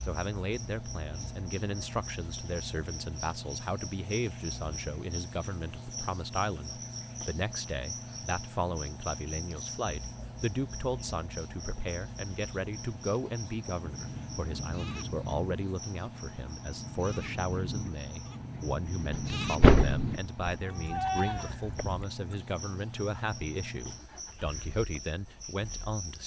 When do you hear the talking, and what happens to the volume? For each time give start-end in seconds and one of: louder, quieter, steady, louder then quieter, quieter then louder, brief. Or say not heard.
0.0-26.2 steady.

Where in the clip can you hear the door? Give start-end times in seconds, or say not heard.
19.1-20.6.